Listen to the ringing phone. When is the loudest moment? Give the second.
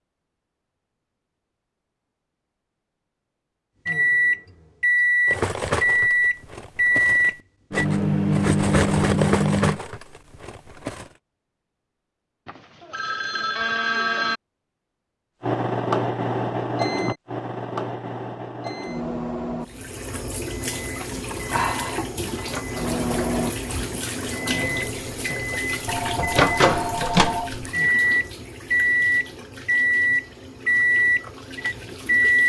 14 s.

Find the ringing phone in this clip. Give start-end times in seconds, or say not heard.
12.4-14.4, 25.9-27.7.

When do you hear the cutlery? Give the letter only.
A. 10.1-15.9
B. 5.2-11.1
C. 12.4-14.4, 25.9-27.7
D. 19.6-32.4
B.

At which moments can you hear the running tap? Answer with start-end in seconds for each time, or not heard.
19.6-32.4.